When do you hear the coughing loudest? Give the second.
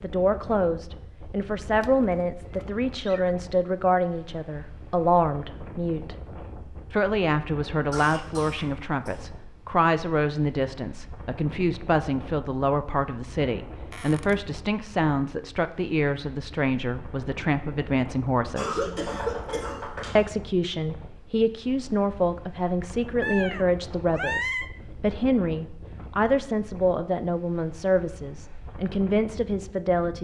19 s.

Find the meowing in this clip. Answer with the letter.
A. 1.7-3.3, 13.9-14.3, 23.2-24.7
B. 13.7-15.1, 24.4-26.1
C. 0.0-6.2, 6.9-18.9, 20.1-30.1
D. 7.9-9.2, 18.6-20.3
A.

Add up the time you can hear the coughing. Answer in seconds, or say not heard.
3 s.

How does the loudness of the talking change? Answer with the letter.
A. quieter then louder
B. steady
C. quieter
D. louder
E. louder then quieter
B.